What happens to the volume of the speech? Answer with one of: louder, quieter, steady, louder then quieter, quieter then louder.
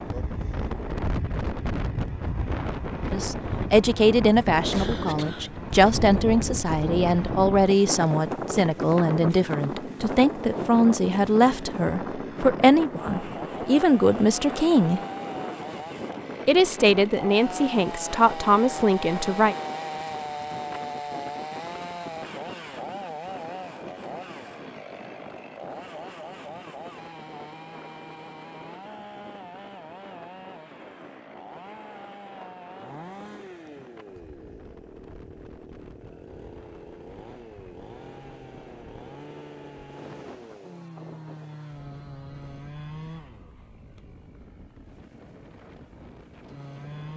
steady.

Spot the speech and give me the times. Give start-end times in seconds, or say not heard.
3.1-15.0, 16.4-19.6.